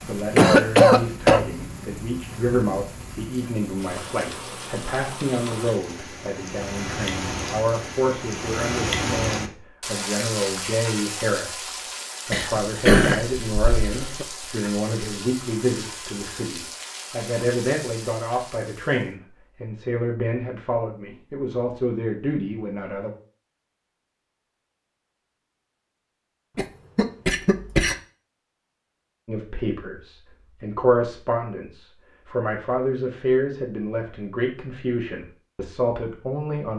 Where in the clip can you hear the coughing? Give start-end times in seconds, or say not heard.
0.3-1.4, 12.3-14.2, 26.6-27.9.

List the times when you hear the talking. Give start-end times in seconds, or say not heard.
0.1-23.1, 29.2-36.7.